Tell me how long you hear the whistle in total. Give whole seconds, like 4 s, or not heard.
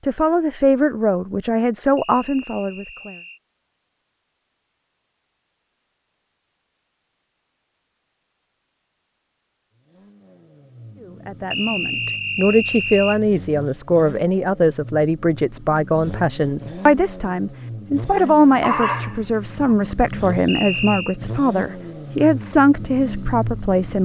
4 s.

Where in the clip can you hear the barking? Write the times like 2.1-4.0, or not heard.
18.1-19.8.